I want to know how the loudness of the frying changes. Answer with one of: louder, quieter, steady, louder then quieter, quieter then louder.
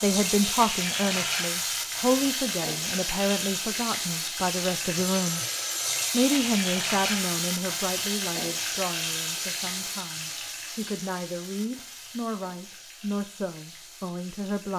quieter.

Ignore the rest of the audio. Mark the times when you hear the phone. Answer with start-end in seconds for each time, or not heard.
5.0-6.1.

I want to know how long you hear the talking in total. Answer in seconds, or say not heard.
14 s.